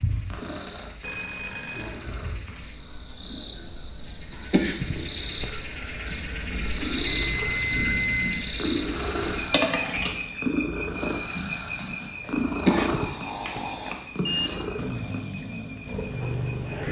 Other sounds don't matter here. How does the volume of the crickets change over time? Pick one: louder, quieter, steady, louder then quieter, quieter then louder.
louder then quieter.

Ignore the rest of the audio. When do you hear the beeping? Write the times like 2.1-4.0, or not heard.
1.0-2.0, 7.0-8.4, 14.2-14.8.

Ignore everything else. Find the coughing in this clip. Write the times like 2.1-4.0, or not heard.
4.3-6.1, 12.4-13.6.